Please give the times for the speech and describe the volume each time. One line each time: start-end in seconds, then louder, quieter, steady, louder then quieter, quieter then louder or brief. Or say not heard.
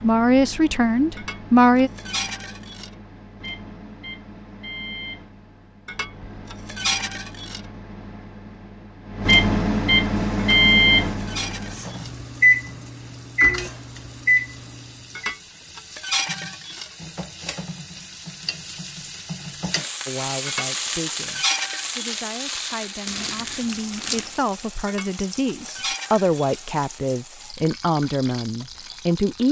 0.0-1.9 brief
20.1-29.4 louder.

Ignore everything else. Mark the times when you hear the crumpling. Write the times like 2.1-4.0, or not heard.
23.1-24.4.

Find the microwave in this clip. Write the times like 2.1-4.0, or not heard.
0.0-15.3.